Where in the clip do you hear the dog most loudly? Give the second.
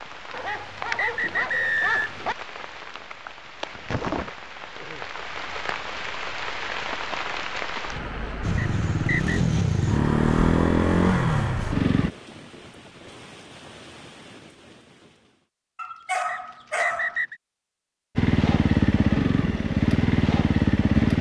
16 s.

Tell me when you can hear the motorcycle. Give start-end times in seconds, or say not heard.
8.4-12.1, 18.1-21.1.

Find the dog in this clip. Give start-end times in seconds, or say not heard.
0.3-2.4, 15.8-17.2.